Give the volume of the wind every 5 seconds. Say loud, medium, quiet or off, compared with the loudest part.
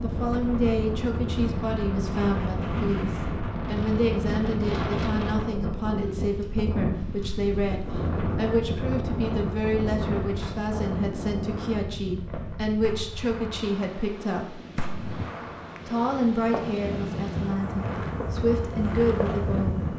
loud, loud, medium, loud.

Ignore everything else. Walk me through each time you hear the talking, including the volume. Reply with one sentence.
The talking can be heard from 0.0 to 14.6 s, at a steady volume; and from 15.8 to 19.9 s, getting quieter then louder.